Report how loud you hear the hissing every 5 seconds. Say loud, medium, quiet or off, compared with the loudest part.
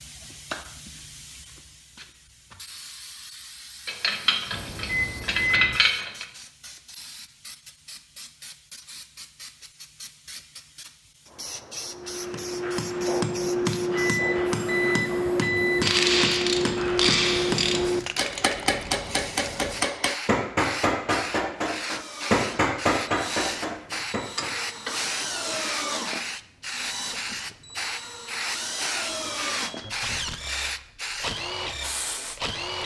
medium, quiet, medium, medium, loud, loud, loud.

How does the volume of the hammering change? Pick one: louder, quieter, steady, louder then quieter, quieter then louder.
steady.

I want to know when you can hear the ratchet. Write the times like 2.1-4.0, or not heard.
3.9-6.2, 15.8-17.8, 24.4-26.1.